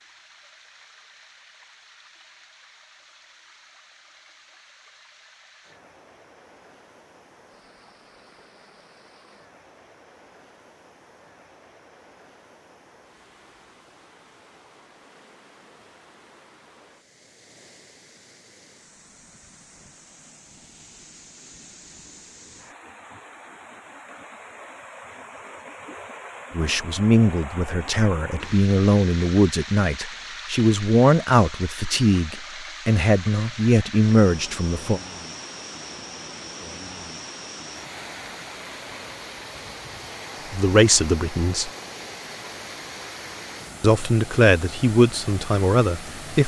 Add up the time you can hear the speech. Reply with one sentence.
You can hear the speech for 12 seconds altogether.